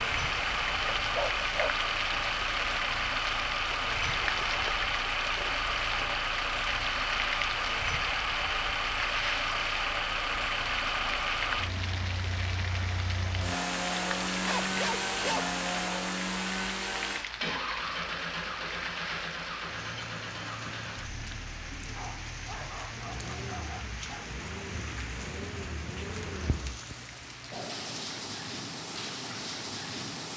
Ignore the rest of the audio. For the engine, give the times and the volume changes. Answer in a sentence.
You can hear the engine from 0.0 to 26.8 s, getting quieter.